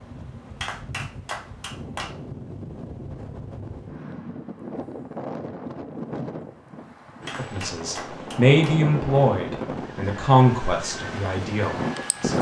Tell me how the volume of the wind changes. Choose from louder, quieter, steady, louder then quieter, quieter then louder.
louder.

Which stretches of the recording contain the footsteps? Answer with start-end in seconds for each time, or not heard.
not heard.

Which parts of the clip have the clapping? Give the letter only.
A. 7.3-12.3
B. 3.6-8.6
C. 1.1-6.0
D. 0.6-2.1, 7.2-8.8
D.